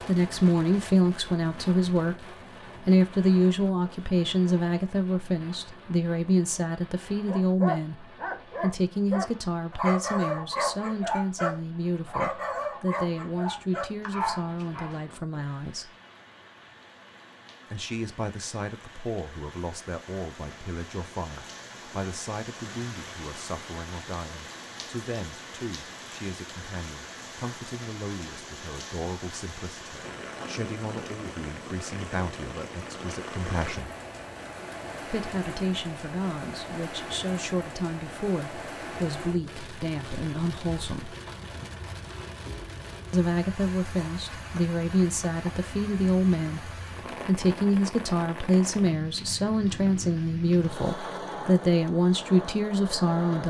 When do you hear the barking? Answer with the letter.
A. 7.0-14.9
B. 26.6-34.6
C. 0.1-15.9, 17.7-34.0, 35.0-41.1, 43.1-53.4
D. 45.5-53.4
A.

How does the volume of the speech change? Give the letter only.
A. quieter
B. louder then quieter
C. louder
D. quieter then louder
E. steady
D.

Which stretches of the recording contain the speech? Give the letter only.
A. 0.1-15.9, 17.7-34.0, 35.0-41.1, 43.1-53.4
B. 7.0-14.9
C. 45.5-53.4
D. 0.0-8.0
A.